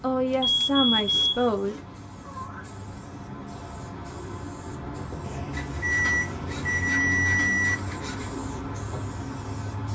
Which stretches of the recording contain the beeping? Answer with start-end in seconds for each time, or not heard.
0.3-1.2, 5.2-7.8.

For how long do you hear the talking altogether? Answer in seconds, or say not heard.
2 s.